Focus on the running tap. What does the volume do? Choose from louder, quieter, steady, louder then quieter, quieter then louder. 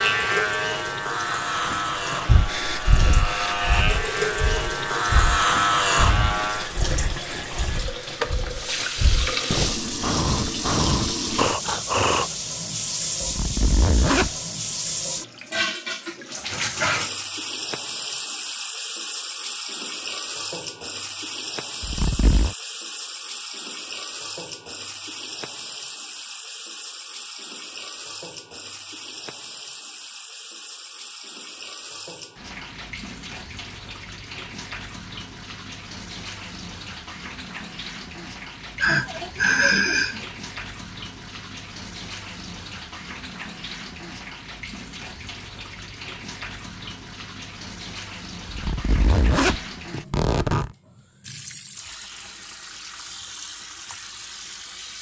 quieter.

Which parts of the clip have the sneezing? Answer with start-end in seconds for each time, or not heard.
38.8-40.2.